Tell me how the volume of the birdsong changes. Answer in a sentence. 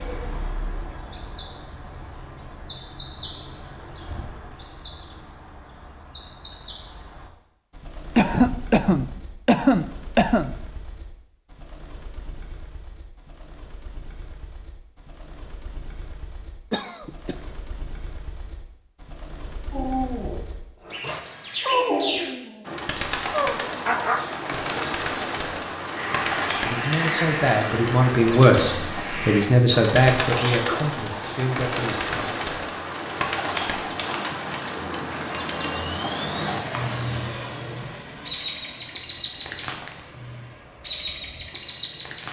The volume of the birdsong goes down, then up.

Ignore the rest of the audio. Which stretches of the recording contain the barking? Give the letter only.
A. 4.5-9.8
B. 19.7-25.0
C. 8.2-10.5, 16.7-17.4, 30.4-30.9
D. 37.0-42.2
B.